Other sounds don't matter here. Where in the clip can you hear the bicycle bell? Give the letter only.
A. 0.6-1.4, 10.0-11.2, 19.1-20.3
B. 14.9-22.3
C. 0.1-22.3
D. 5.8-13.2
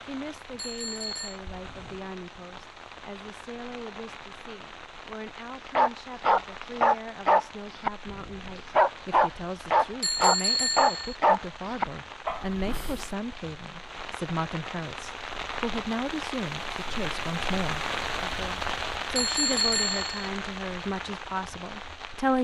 A.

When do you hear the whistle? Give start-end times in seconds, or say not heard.
not heard.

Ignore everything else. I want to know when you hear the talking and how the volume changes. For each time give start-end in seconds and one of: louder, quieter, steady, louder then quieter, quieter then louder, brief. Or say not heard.
0.1-22.3 louder.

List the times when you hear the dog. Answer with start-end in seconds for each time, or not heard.
5.8-13.2.